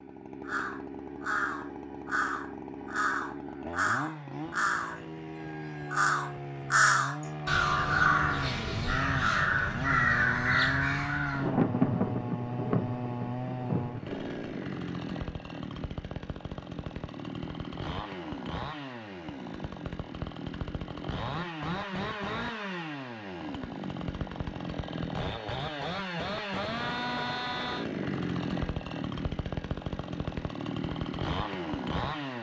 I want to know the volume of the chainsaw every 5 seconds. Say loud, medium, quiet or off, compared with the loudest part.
medium, loud, loud, medium, loud, loud, loud.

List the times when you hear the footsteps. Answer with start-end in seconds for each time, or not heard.
not heard.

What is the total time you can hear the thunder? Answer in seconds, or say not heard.
3 s.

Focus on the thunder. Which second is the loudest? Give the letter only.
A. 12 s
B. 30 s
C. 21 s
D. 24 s
A.